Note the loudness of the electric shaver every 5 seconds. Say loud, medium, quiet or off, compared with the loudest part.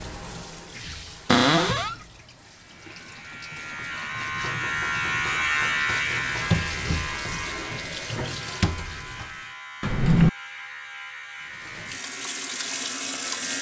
loud, loud, medium.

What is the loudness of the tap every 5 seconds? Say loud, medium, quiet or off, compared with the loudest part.
medium, loud, loud.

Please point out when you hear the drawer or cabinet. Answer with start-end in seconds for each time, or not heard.
1.2-1.9, 9.8-10.3.